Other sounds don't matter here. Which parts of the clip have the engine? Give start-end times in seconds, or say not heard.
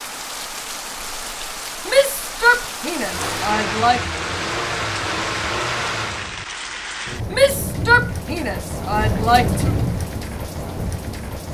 3.0-6.3.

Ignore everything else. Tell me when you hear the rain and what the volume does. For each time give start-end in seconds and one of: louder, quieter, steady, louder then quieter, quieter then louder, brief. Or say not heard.
0.0-11.4 louder.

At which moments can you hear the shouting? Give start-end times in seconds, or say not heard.
1.9-4.0, 7.3-9.7.